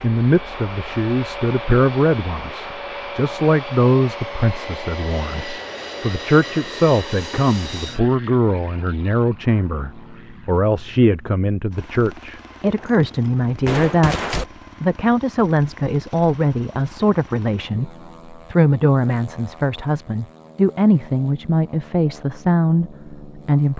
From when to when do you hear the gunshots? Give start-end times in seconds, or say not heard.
12.8-14.4.